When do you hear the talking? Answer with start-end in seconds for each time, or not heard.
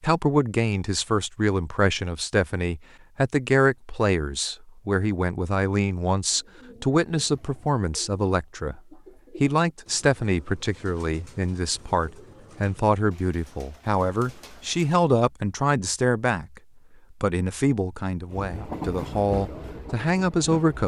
0.0-8.8, 9.4-16.6, 17.2-20.8.